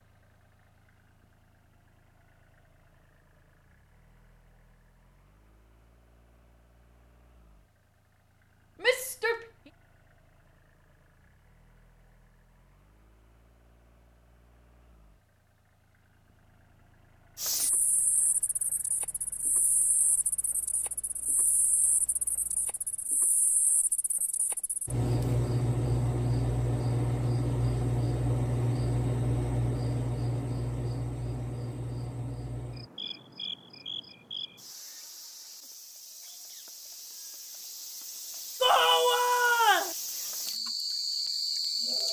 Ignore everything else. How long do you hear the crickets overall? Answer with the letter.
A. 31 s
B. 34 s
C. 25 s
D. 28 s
C.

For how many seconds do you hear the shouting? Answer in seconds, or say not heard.
2 s.